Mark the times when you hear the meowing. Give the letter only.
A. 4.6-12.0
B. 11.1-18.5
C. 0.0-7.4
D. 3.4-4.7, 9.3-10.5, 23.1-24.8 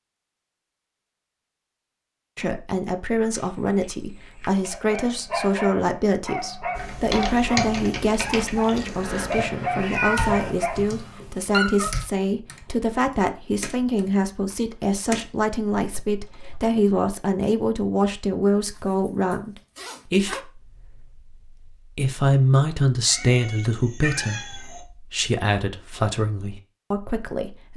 D.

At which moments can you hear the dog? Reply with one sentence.
The dog can be heard from 4.6 to 12.0 s.